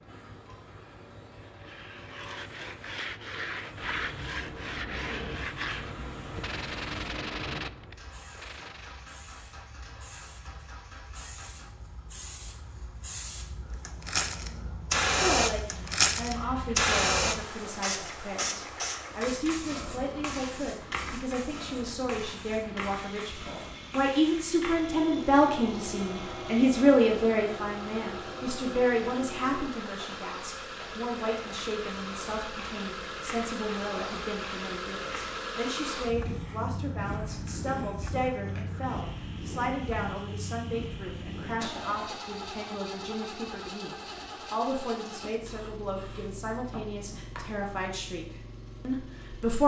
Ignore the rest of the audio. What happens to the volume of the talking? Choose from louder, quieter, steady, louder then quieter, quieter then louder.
louder then quieter.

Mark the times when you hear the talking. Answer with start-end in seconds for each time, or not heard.
15.2-49.6.